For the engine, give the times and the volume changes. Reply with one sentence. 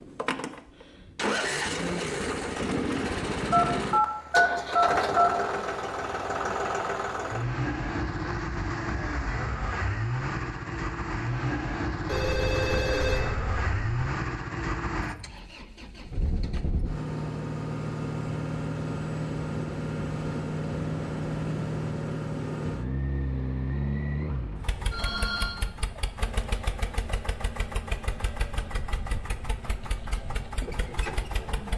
The engine can be heard from 0.0 to 31.7 s, getting quieter.